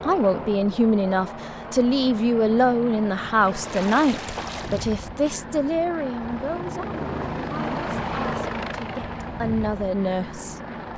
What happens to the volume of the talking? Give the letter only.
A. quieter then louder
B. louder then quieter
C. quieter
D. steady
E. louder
A.